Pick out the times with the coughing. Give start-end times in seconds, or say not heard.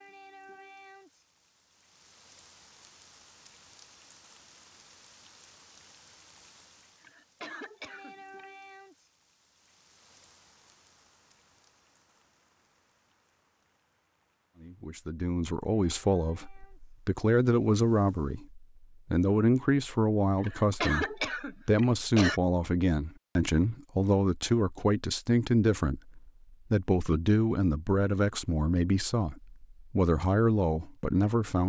7.0-8.4, 20.4-22.4.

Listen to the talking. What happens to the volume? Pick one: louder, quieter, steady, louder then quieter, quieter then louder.
steady.